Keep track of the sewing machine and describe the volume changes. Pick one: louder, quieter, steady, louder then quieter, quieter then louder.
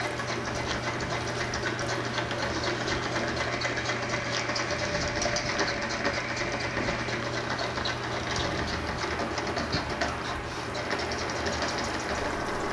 steady.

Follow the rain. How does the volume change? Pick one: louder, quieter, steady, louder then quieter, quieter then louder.
steady.